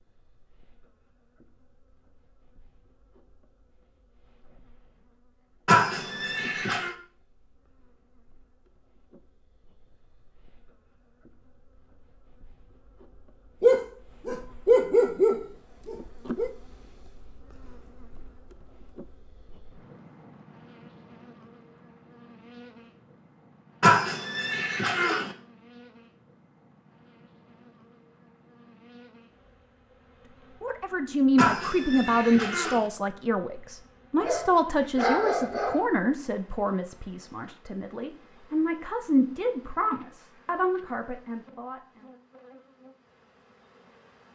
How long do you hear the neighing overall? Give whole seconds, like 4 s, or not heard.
4 s.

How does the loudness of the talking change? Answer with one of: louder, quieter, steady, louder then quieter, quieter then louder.
quieter.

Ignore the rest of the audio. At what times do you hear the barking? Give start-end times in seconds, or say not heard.
13.6-16.5, 34.2-35.9.